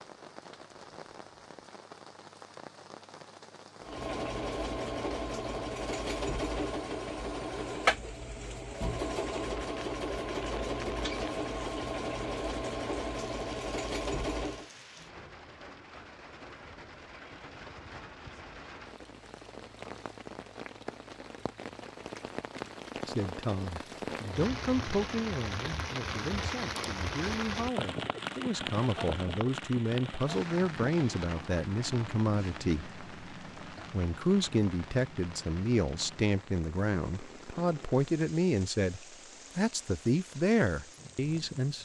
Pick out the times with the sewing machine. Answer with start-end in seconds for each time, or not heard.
3.8-14.7.